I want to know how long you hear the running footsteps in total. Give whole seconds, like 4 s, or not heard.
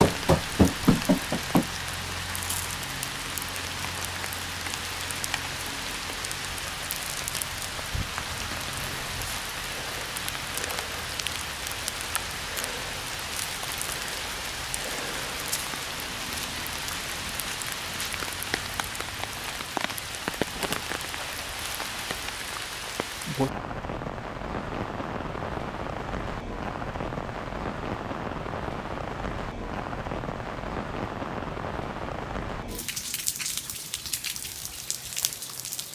2 s.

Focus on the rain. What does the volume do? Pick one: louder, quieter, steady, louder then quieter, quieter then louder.
steady.